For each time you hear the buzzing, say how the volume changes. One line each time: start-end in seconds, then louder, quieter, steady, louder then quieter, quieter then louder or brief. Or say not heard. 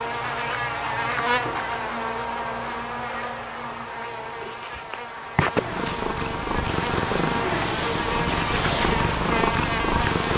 0.0-10.3 quieter then louder.